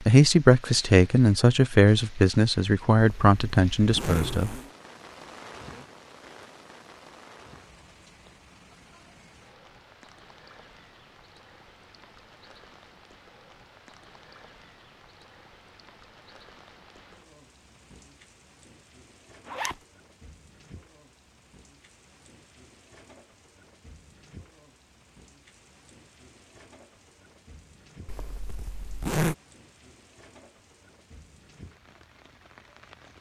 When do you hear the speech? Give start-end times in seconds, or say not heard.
0.0-4.5.